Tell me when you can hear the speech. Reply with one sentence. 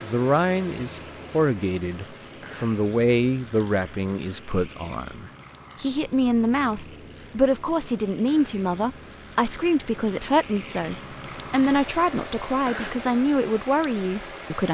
You can hear the speech from 0.0 to 14.7 s.